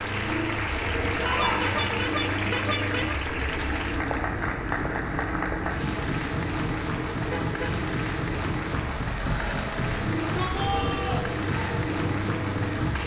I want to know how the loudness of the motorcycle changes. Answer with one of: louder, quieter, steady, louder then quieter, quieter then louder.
steady.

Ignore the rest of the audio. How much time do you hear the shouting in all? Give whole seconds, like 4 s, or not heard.
2 s.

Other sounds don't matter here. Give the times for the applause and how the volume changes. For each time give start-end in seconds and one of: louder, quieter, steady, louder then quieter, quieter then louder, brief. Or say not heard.
0.0-13.0 steady.